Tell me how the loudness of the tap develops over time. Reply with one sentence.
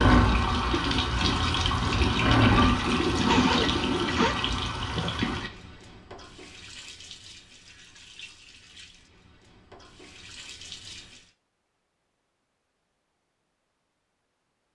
The loudness of the tap goes down.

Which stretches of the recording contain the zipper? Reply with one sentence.
The zipper can be heard from 3.2 to 4.3 s.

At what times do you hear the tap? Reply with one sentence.
You can hear the tap from 0.0 to 11.3 s.